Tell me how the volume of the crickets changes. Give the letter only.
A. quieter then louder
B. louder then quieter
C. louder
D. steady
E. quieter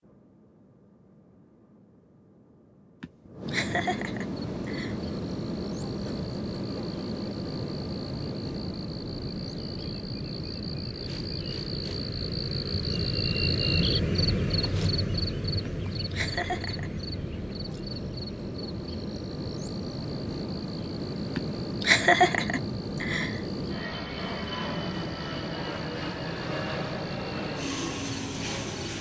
B.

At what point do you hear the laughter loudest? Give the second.
22 s.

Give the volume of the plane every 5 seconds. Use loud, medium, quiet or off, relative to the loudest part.
medium, loud, medium, medium, loud, loud.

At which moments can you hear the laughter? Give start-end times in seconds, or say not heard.
3.0-5.0, 15.7-16.9, 21.4-23.4.